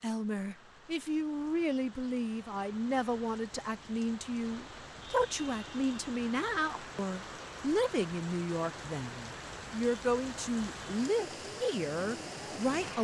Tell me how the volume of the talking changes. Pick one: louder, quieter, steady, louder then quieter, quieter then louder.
steady.